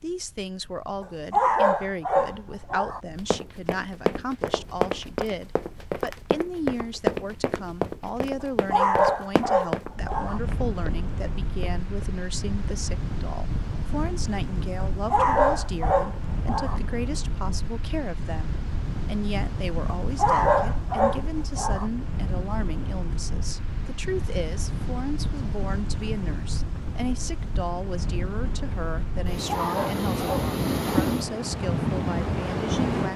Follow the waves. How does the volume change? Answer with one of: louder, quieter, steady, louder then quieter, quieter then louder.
louder.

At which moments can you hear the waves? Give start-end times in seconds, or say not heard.
0.0-33.1.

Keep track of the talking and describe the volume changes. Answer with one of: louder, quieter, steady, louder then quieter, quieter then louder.
steady.